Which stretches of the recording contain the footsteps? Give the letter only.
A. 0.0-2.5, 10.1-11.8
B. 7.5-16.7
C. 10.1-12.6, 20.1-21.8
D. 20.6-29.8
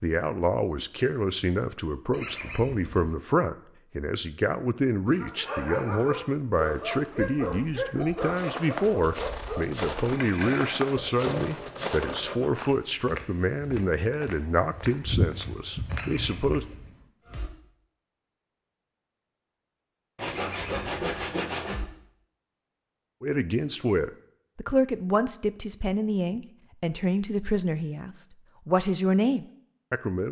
B.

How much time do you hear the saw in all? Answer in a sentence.
You can hear the saw for 4 seconds altogether.